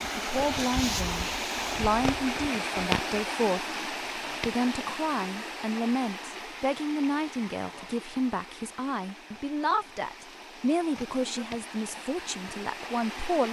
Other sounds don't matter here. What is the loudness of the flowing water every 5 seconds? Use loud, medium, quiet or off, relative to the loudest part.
loud, medium, medium.